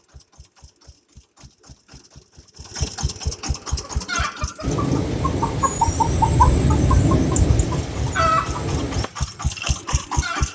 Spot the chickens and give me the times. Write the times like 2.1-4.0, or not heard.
3.9-10.4.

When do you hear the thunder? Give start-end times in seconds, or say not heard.
4.6-9.1.